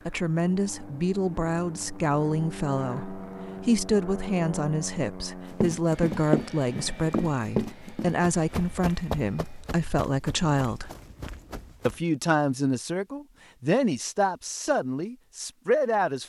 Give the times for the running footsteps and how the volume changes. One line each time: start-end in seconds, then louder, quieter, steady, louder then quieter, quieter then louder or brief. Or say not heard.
5.5-12.1 quieter.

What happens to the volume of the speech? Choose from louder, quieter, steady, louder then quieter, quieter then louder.
steady.